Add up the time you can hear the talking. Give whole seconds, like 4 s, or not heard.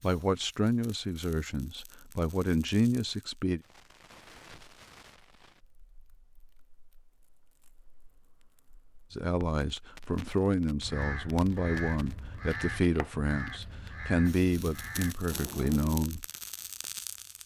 11 s.